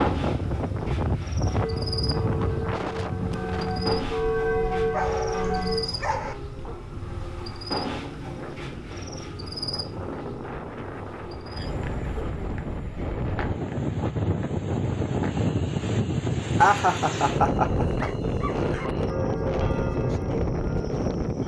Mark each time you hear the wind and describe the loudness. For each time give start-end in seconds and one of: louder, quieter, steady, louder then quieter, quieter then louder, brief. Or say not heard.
0.0-21.4 quieter then louder.